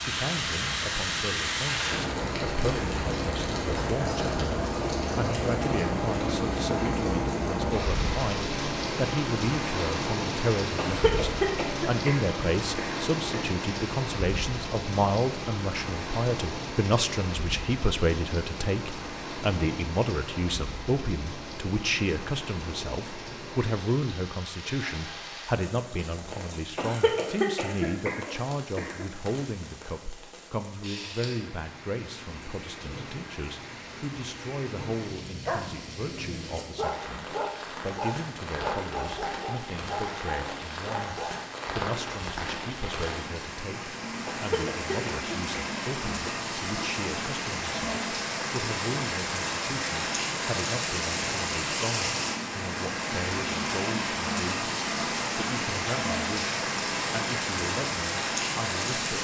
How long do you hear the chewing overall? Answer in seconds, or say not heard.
not heard.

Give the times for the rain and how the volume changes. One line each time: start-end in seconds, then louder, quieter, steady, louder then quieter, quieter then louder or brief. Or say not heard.
0.0-59.1 quieter then louder.